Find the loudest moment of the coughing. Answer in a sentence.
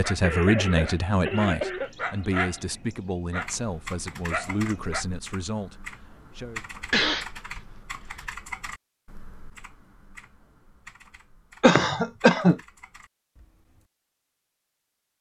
The loudest moment of the coughing is at 12 seconds.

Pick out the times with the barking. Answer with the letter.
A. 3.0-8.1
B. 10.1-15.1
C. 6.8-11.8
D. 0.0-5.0
D.